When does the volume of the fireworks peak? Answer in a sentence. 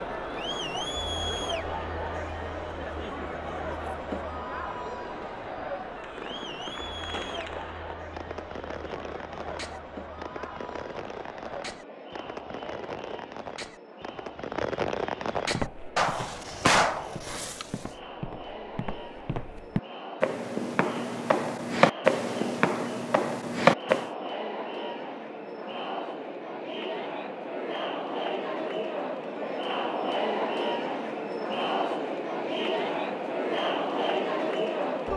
The loudest moment of the fireworks is at 17 seconds.